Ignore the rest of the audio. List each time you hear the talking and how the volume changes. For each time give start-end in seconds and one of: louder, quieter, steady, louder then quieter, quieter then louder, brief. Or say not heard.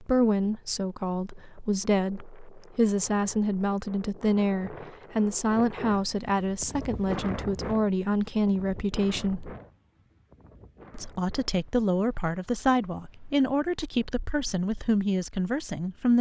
0.0-9.5 steady
10.9-16.1 steady.